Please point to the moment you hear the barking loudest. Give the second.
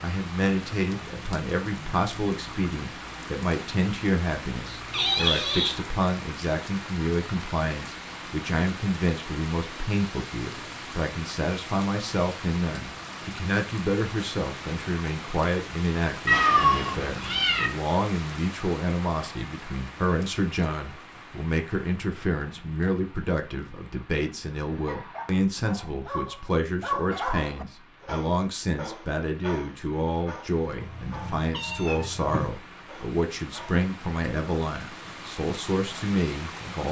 27 s.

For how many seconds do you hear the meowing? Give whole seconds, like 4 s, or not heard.
4 s.